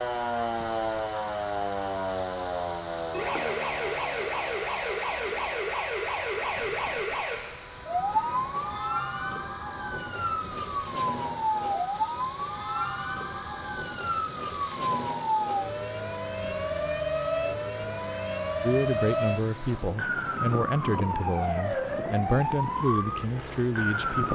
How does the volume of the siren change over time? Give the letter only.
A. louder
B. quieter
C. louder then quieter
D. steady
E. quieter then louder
D.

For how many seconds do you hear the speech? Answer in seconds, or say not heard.
6 s.